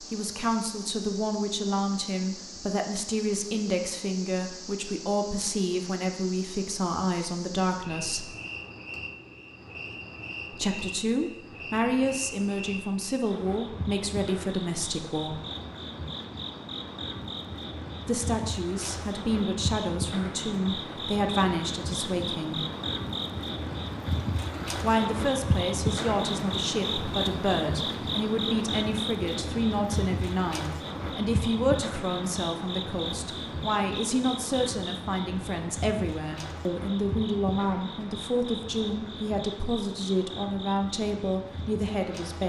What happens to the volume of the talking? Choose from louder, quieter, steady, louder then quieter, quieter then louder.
steady.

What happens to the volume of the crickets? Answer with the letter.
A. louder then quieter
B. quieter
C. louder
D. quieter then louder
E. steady
A.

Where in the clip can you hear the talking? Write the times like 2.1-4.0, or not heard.
0.0-8.3, 10.5-15.4, 18.1-22.6, 24.8-42.4.